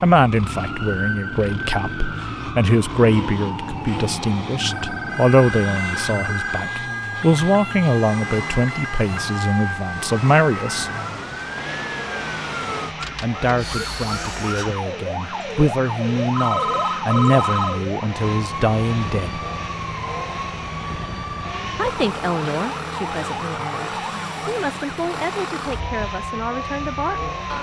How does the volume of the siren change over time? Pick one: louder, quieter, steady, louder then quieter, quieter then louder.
steady.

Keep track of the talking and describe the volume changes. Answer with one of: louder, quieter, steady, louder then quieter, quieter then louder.
quieter.